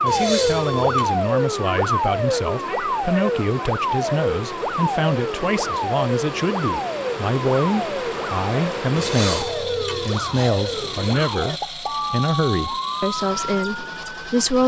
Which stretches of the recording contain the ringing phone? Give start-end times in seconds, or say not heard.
0.1-1.2, 8.9-11.1.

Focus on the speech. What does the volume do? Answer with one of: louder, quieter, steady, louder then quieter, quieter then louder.
steady.